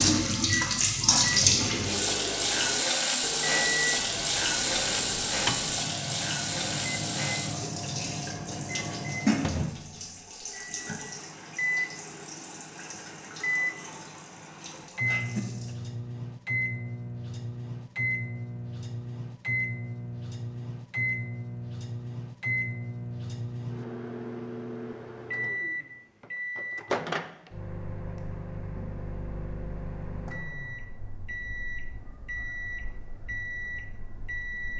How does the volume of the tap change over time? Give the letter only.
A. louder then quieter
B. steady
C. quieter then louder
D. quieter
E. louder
D.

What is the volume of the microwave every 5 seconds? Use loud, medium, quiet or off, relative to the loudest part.
loud, loud, loud, loud, loud, loud, medium.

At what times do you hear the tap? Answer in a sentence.
The tap can be heard from 0.0 to 15.8 s.